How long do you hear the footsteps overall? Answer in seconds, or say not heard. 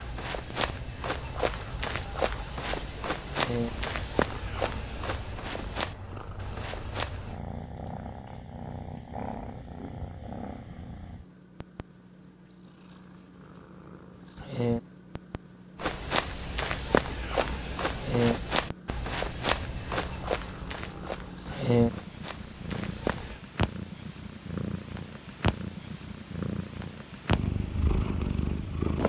15 s.